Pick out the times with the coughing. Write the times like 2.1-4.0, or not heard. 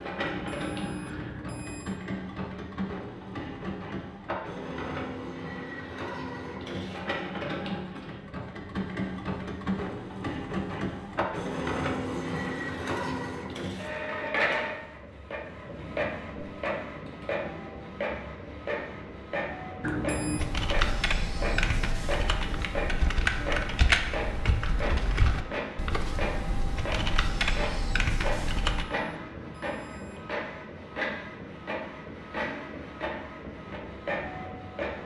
not heard.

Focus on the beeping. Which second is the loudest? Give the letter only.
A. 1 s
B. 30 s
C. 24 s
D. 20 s
D.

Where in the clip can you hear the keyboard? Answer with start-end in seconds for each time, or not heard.
20.4-28.9.